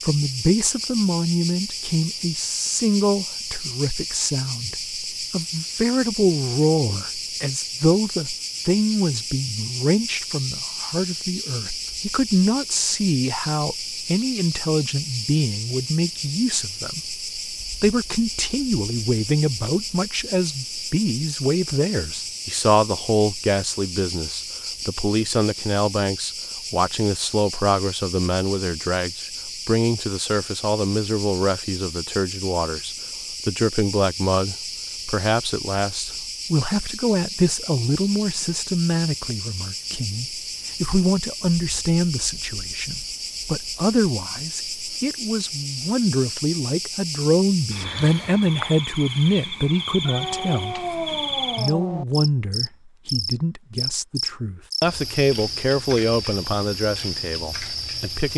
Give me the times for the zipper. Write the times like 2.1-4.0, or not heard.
not heard.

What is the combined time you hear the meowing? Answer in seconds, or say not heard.
2 s.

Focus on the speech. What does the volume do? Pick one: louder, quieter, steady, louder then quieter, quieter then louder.
steady.